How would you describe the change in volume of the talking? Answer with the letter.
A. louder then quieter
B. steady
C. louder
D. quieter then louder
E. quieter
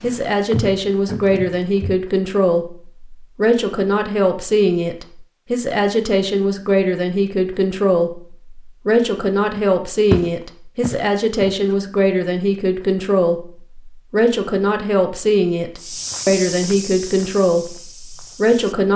B.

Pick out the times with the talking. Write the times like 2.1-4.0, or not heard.
0.0-18.9.